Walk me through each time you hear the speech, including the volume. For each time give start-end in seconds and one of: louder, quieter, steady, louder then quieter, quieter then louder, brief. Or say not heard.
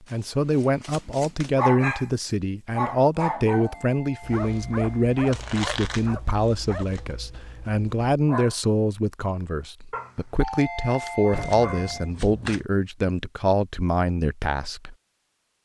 0.1-14.9 steady.